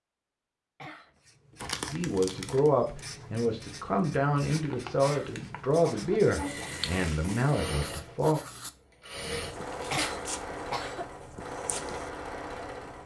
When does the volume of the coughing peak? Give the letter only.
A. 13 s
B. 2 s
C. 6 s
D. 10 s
D.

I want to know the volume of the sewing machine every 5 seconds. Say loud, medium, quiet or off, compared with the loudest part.
off, loud, loud.